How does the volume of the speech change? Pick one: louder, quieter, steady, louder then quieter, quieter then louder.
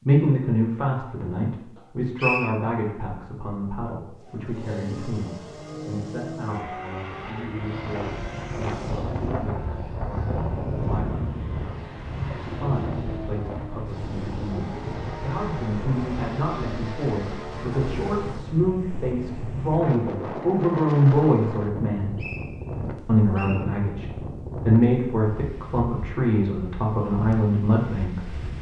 quieter then louder.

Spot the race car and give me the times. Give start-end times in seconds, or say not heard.
4.2-18.6.